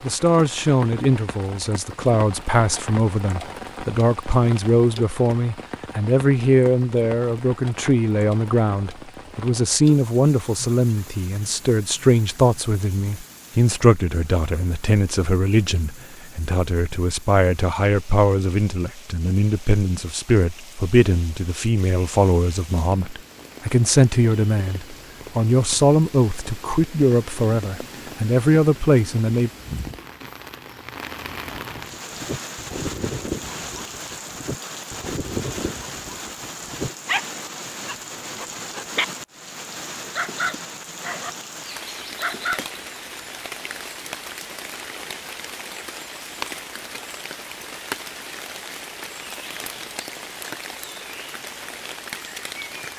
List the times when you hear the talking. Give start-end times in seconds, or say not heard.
0.0-29.5.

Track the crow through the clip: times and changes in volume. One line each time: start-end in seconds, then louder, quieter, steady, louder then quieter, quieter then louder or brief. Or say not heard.
not heard.